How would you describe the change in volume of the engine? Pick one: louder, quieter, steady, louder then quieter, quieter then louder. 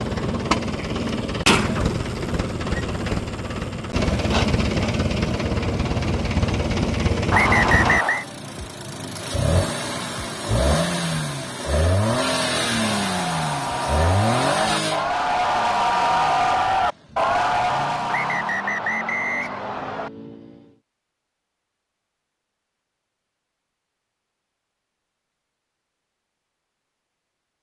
quieter.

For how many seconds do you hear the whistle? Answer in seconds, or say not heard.
3 s.